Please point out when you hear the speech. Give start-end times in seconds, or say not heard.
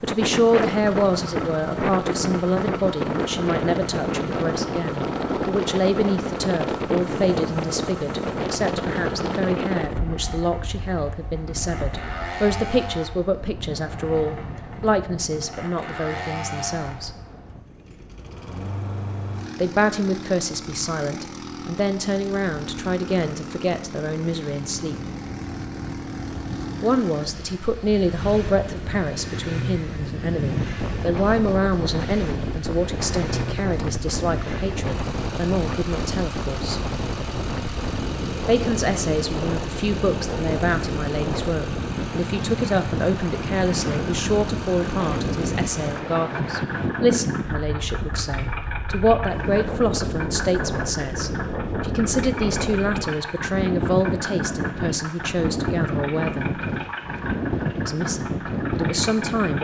0.0-17.1, 19.6-25.0, 26.8-36.9, 38.5-56.6, 57.9-59.5.